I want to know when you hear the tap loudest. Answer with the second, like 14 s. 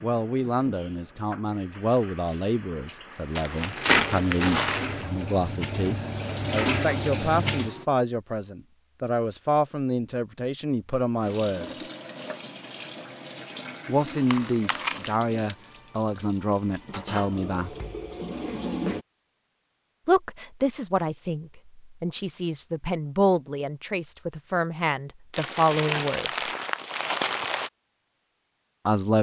7 s.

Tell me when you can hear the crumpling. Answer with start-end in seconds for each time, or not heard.
3.4-5.0, 14.1-15.2, 25.3-27.7.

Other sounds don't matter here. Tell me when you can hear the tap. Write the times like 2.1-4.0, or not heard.
0.0-7.8, 11.2-19.1.